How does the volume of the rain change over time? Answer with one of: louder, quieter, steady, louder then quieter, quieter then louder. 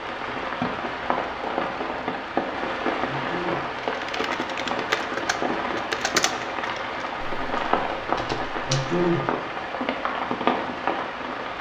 steady.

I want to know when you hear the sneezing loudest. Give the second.
9 s.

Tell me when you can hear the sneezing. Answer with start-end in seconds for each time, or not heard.
3.0-3.8, 8.7-9.3.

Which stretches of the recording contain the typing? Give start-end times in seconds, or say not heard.
3.8-9.1.